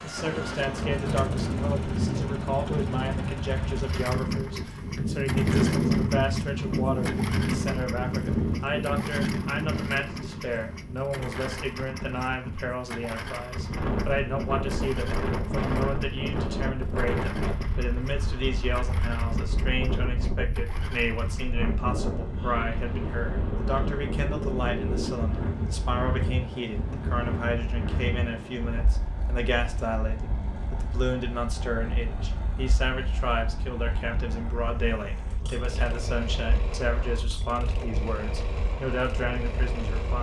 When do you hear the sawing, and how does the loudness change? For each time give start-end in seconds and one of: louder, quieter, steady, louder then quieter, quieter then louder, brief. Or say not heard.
not heard.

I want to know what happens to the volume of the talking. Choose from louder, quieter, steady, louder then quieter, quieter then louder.
steady.